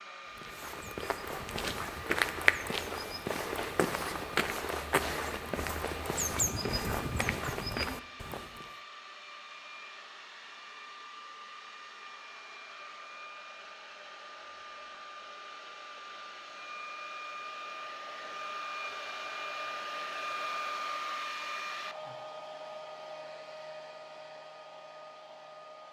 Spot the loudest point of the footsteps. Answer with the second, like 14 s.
2 s.